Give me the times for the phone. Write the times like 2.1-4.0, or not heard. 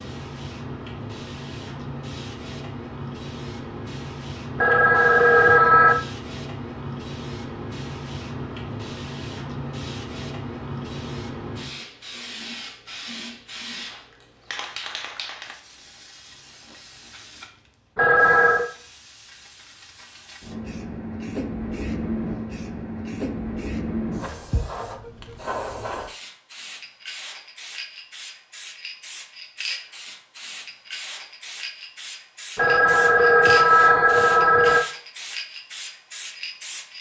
4.5-6.0, 17.9-18.7, 32.5-34.9.